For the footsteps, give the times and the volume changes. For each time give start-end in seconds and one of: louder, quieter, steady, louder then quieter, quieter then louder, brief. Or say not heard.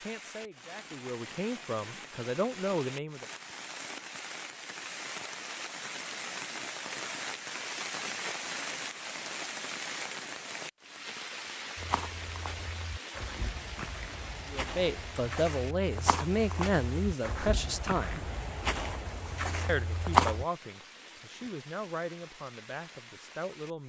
11.8-20.4 louder.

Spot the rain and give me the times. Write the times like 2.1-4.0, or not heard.
0.0-23.8.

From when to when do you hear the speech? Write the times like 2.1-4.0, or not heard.
0.1-3.2, 14.5-18.3, 19.6-23.8.